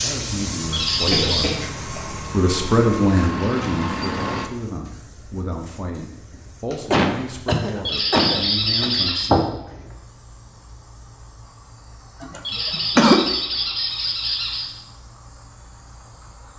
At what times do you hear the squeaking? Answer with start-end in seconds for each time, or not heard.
0.7-1.6, 7.8-9.3, 12.4-14.7.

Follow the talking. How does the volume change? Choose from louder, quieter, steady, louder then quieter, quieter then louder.
louder then quieter.